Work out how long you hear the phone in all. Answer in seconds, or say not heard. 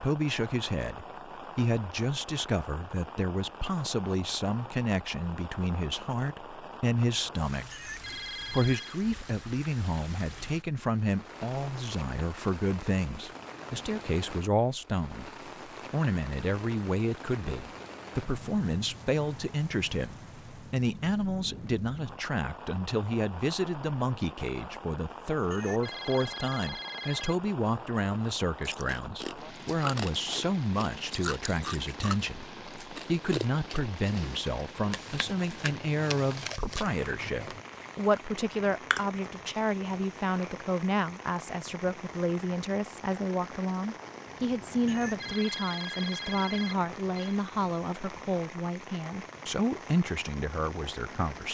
6 s.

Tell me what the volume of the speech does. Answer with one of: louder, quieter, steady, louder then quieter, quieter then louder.
steady.